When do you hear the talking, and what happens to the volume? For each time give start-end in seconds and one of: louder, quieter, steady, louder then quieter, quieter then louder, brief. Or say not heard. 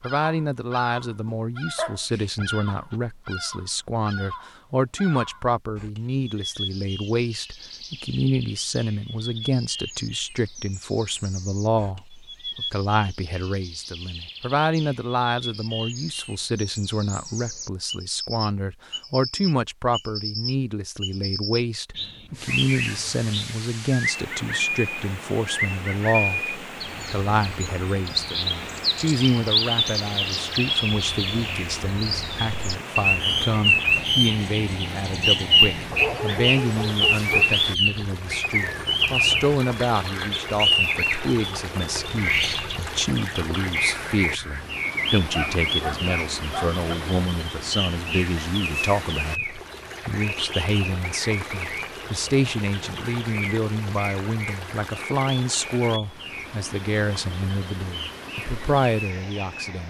0.0-59.8 steady.